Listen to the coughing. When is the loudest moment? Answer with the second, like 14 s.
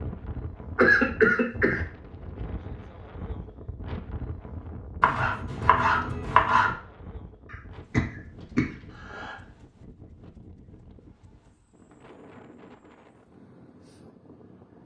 1 s.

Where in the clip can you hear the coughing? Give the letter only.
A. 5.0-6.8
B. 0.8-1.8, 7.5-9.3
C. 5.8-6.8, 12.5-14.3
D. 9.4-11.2
B.